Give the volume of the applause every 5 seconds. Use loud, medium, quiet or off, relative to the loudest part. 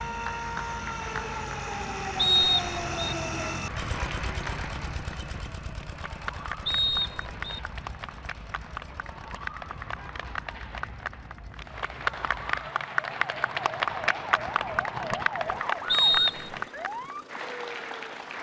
medium, medium, loud, loud.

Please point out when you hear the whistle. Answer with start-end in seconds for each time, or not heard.
2.1-3.1, 6.7-7.6, 15.9-16.6.